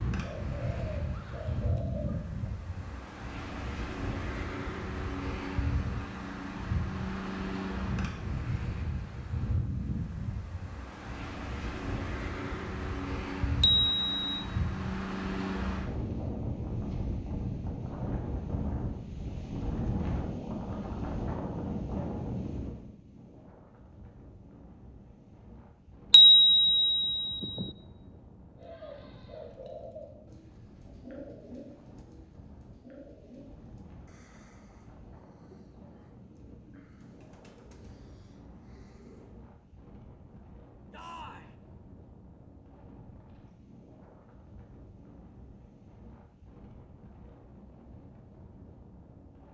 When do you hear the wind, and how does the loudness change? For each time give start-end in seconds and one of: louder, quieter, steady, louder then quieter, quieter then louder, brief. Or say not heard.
0.0-49.4 quieter.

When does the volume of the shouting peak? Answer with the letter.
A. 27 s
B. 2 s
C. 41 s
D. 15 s
C.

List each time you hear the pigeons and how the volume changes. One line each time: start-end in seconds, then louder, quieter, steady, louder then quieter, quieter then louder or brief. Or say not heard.
0.1-2.5 brief
28.6-39.3 quieter.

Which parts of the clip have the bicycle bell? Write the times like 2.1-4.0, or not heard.
13.6-14.2, 26.1-27.7.